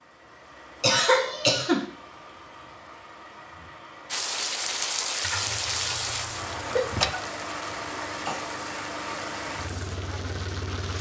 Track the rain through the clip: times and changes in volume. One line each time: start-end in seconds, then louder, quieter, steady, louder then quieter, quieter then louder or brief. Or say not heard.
4.0-10.9 quieter.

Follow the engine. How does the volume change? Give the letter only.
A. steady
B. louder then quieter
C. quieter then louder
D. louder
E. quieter
D.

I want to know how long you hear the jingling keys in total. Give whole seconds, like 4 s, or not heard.
2 s.